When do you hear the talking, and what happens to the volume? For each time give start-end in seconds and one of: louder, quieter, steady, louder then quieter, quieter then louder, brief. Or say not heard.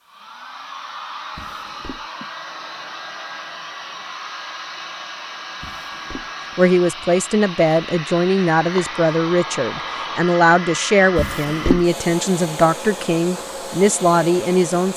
6.5-14.9 steady.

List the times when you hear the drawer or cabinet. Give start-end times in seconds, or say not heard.
1.4-2.0, 5.6-6.3, 11.2-11.8.